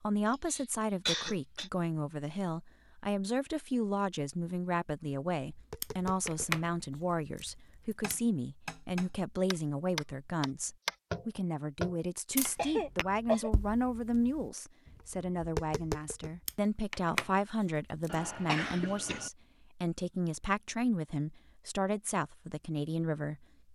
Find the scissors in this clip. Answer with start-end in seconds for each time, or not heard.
5.8-8.2, 16.4-18.1.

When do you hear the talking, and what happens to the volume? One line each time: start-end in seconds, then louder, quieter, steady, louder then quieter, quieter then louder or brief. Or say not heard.
0.0-23.4 steady.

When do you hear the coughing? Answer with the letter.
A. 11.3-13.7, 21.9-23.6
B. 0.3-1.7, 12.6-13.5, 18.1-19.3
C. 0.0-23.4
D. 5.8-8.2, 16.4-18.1
B.